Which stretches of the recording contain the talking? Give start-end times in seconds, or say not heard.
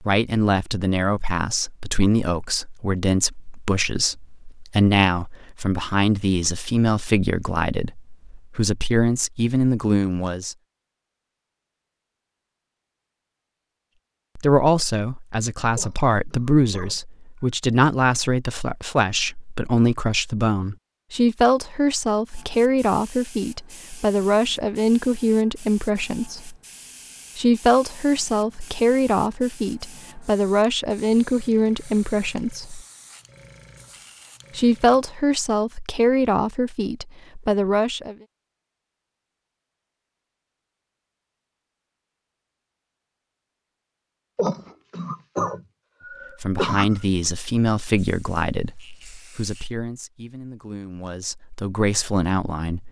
0.0-10.6, 14.3-26.6, 27.4-32.9, 34.5-38.1, 46.4-52.8.